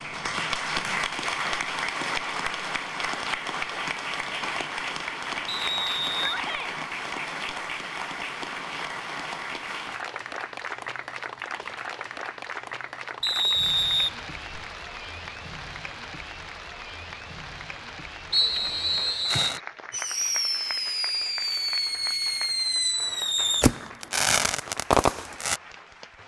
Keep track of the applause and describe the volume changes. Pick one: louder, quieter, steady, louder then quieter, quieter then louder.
quieter.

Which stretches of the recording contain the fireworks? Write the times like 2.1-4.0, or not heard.
19.2-25.6.